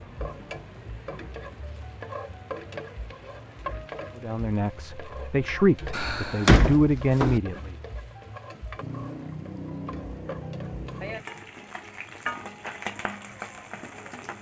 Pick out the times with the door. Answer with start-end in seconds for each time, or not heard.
5.9-7.4.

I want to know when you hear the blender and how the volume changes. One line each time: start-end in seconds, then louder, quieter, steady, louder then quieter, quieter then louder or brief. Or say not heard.
not heard.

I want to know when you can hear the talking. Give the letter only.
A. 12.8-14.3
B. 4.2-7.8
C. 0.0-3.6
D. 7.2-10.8
B.